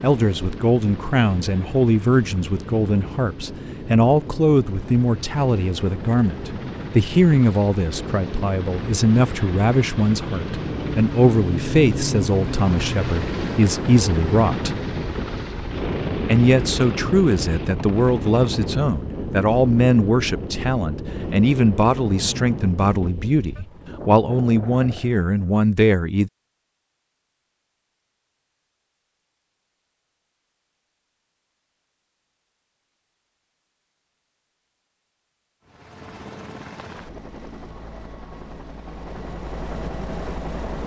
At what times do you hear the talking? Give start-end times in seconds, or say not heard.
0.0-14.8, 16.2-26.3.